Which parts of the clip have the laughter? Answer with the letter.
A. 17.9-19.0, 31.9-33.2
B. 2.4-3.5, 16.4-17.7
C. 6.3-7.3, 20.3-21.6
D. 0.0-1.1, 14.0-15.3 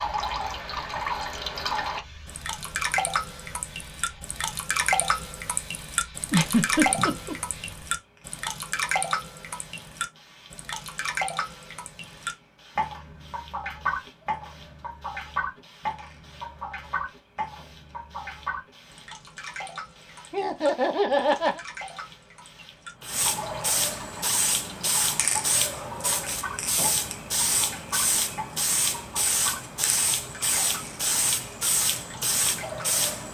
C.